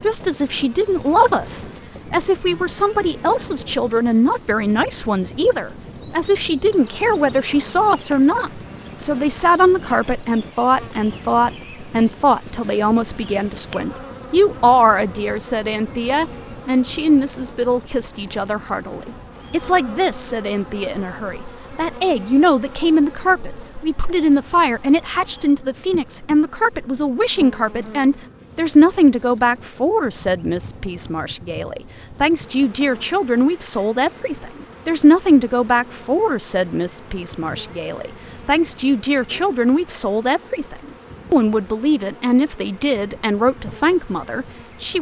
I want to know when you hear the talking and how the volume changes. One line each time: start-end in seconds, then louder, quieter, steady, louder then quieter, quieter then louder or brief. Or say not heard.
0.0-44.9 steady.